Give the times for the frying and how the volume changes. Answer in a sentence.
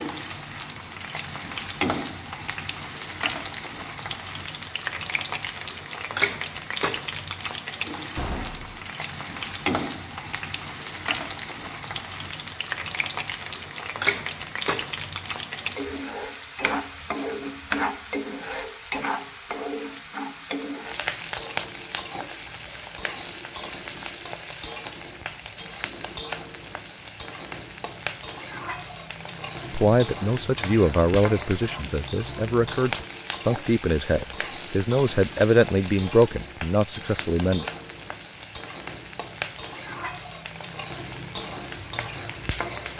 You can hear the frying from 0.0 to 42.9 s, at a steady volume.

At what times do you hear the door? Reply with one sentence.
You can hear the door from 8.2 to 8.8 s.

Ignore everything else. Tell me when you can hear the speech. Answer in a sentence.
You can hear the speech from 29.7 to 37.6 s.